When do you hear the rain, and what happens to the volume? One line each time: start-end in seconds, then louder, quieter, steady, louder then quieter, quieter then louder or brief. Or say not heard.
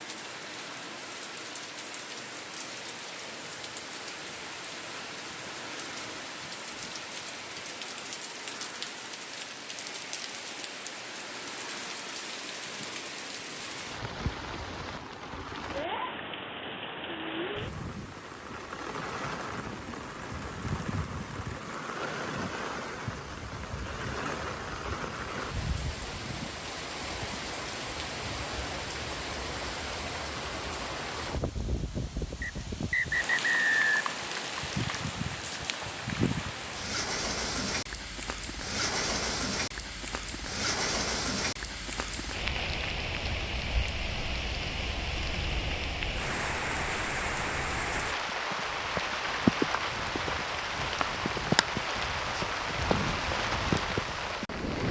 0.0-54.8 louder.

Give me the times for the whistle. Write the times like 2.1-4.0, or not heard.
32.4-34.1.